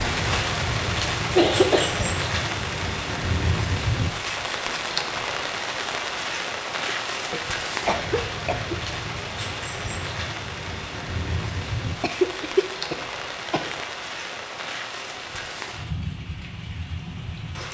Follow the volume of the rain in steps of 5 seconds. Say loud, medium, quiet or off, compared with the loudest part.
loud, loud, medium, medium.